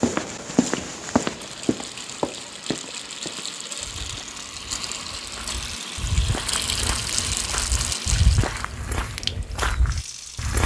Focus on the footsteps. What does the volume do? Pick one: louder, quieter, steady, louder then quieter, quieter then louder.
quieter then louder.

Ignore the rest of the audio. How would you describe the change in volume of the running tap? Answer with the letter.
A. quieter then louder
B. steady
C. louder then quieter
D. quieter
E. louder
C.